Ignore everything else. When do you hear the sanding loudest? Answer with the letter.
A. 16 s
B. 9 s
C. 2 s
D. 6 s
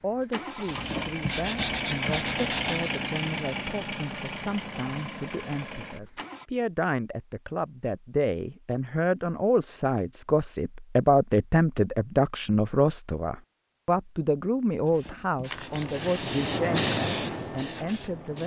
C.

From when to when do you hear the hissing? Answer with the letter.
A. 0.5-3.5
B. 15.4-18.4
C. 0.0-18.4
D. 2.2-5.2
B.